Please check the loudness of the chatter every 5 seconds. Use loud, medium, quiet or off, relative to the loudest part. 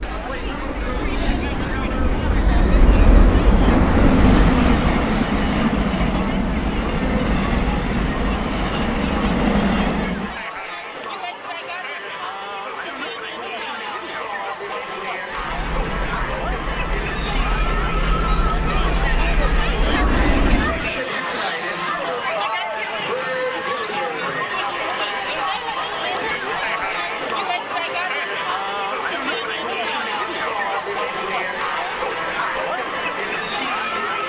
medium, medium, medium, loud, loud, loud, loud.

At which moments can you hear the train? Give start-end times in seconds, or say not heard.
0.0-10.4, 15.3-20.9.